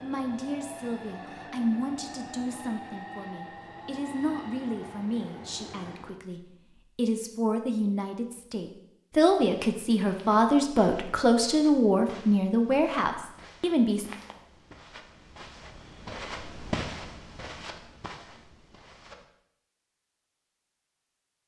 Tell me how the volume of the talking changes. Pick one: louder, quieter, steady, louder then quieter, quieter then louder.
louder.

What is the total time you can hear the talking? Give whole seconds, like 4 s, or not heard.
14 s.